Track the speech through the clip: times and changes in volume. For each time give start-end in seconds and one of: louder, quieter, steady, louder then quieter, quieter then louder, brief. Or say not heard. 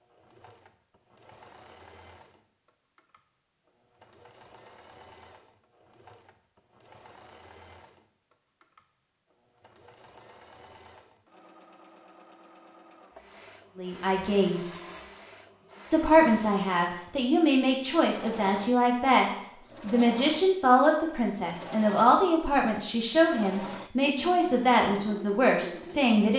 13.8-14.7 brief
15.9-26.3 steady.